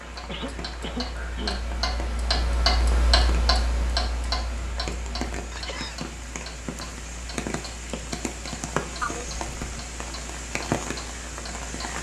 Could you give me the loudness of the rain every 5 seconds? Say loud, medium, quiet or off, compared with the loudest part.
medium, loud, loud.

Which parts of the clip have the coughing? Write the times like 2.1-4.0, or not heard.
0.2-1.6, 5.5-6.0, 9.0-9.9.